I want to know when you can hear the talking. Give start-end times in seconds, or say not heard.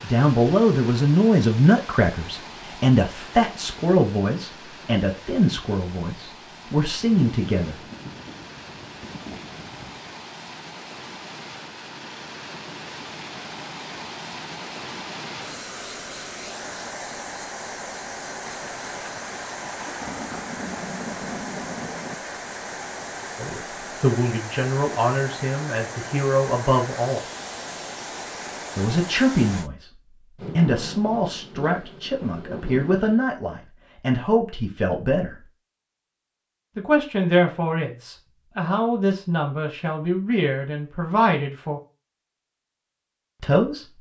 0.0-7.8, 23.4-27.2, 28.8-35.5, 36.8-41.8, 43.4-43.9.